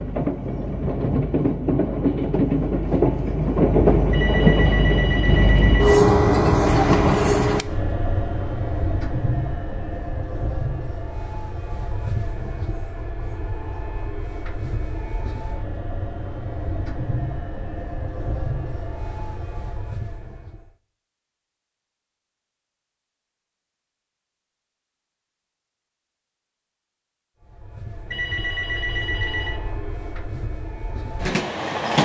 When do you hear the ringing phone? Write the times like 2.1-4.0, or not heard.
4.1-6.0, 28.1-29.6.